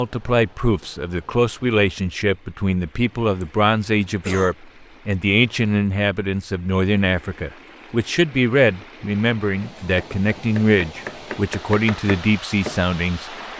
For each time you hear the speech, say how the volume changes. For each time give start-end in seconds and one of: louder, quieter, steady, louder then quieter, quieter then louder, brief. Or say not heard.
0.0-13.3 steady.